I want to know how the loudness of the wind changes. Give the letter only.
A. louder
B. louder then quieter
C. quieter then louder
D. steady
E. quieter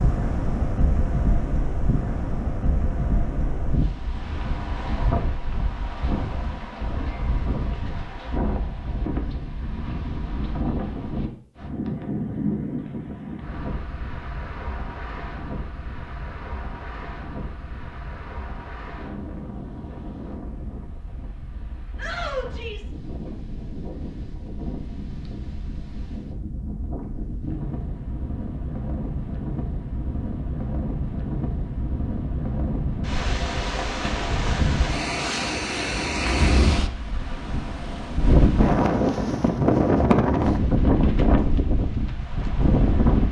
C.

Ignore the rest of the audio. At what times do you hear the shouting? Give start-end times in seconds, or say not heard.
21.9-22.9.